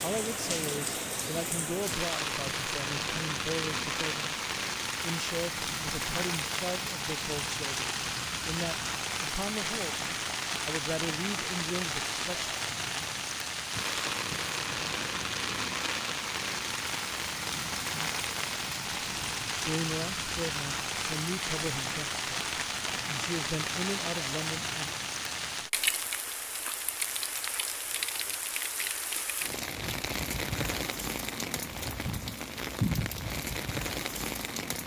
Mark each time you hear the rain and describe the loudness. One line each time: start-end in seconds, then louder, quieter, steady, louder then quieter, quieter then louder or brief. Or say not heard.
0.0-34.8 steady.